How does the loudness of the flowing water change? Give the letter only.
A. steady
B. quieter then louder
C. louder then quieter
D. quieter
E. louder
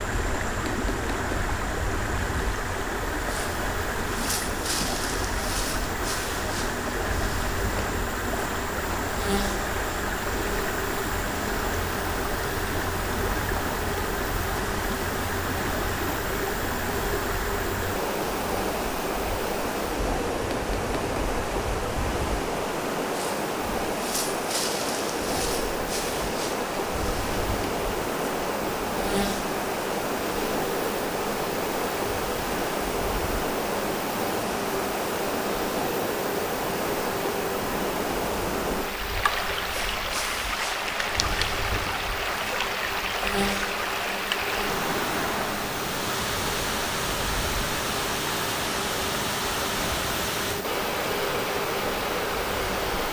A.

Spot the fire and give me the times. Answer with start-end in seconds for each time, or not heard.
not heard.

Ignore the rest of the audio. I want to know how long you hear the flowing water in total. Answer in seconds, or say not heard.
53 s.